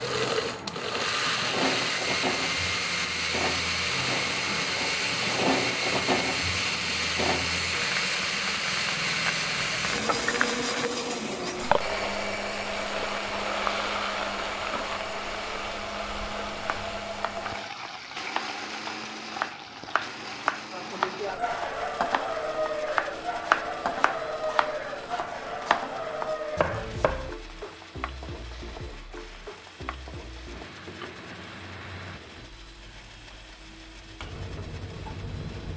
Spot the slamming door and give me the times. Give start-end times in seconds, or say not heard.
not heard.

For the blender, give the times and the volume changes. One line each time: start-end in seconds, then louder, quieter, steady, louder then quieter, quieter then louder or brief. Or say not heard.
0.0-35.7 quieter.